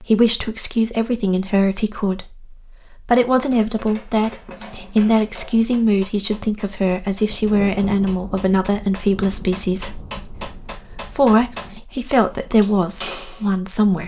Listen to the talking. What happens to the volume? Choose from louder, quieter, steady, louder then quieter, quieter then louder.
steady.